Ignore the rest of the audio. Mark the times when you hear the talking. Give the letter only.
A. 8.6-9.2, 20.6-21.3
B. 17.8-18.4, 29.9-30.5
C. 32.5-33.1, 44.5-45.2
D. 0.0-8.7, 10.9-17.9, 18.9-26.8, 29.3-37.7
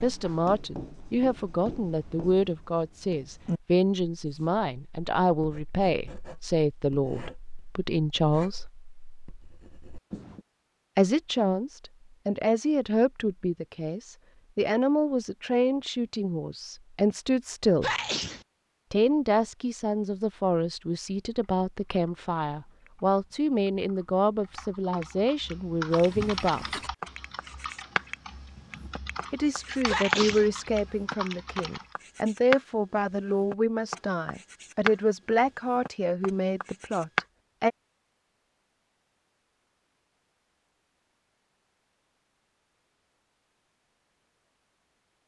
D.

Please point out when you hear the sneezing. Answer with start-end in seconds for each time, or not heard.
17.8-18.4, 29.9-30.5.